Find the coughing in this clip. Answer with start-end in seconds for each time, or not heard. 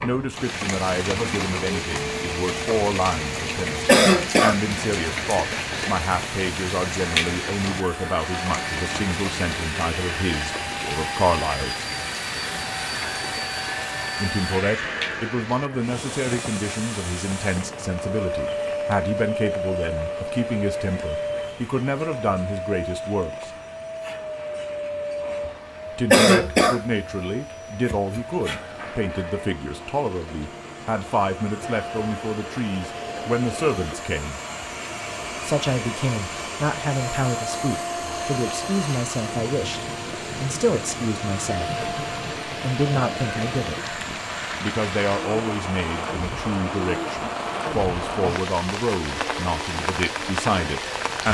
3.9-4.5, 26.1-26.8.